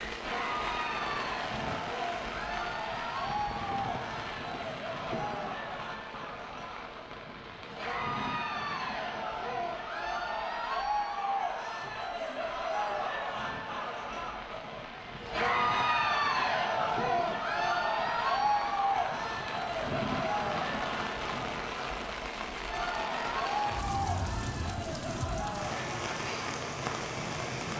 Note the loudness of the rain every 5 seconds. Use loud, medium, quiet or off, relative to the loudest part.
loud, medium, medium, medium, loud, loud.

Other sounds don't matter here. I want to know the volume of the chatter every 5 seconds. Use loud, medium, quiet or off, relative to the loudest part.
medium, medium, medium, loud, medium, medium.